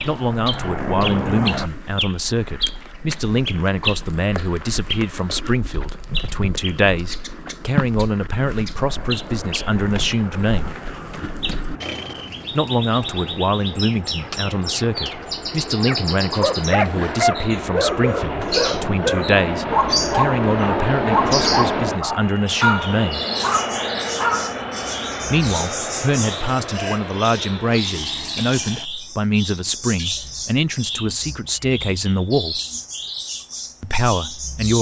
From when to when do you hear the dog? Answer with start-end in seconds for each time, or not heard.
15.8-24.5.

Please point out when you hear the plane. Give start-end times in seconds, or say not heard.
0.0-1.7, 8.8-28.9.